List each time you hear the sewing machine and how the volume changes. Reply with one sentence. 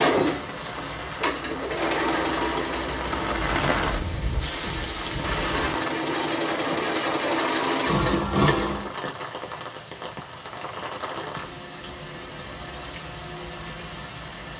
The sewing machine can be heard from 0.0 to 8.9 s, getting quieter then louder.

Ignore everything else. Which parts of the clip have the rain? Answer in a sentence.
You can hear the rain from 0.2 to 14.5 s.